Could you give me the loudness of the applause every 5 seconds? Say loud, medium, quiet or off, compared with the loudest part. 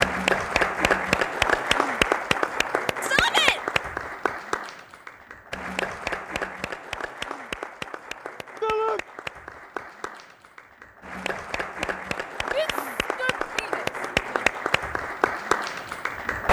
loud, medium, medium, loud.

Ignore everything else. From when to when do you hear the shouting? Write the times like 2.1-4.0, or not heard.
3.0-3.6, 8.6-9.0, 12.5-14.4.